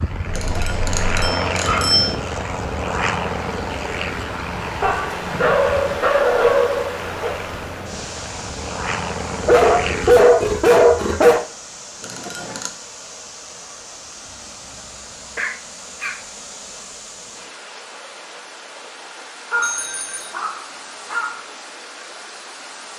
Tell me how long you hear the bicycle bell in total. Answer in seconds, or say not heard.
3 s.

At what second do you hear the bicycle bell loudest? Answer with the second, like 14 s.
2 s.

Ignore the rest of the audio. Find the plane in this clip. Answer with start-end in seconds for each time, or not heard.
0.0-10.2.